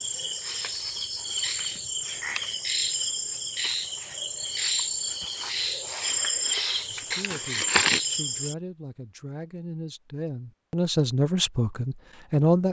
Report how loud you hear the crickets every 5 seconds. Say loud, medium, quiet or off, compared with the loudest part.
loud, loud, off.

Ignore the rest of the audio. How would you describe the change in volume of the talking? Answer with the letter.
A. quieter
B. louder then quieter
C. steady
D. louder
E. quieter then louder
D.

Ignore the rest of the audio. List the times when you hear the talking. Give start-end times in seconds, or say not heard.
6.8-12.6.